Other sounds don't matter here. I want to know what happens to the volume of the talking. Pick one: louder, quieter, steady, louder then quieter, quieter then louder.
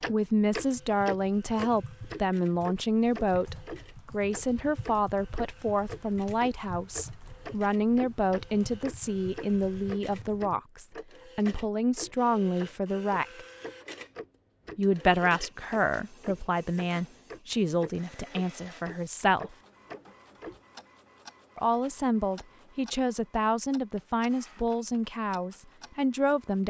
steady.